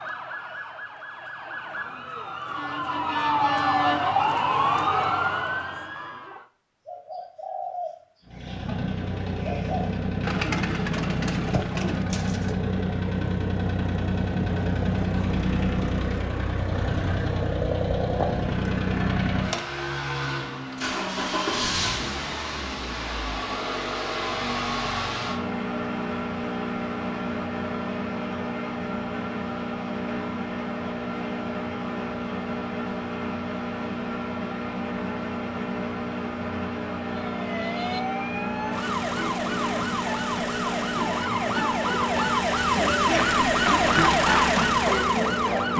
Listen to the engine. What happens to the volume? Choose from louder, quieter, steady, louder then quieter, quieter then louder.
steady.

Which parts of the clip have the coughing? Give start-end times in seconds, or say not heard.
not heard.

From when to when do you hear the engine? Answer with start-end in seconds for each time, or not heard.
8.2-45.7.